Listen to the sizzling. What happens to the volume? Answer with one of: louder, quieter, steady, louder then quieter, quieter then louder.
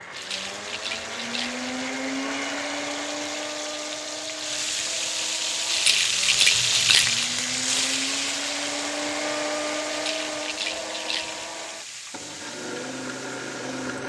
louder then quieter.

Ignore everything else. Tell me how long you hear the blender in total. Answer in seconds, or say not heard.
14 s.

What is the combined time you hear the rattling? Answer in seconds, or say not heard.
5 s.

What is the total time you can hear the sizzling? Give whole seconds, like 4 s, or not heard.
14 s.